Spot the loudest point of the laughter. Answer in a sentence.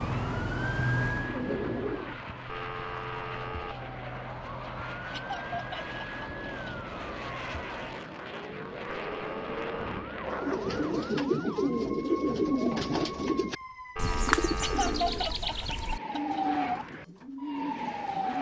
The loudest moment of the laughter is at 15 seconds.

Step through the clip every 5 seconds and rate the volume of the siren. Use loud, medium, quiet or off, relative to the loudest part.
loud, medium, medium, loud.